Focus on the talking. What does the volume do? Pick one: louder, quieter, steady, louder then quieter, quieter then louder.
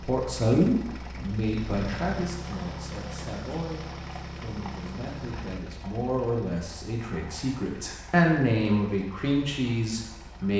quieter then louder.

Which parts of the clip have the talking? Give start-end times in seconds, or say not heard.
0.0-10.5.